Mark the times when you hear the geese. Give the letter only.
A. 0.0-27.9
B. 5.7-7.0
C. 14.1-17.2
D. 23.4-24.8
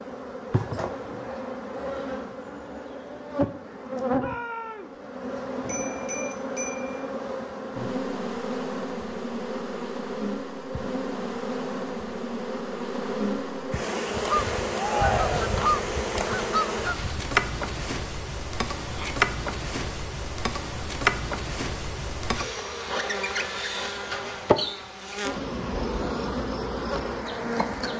C.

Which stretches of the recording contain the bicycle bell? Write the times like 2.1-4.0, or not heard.
5.7-7.0.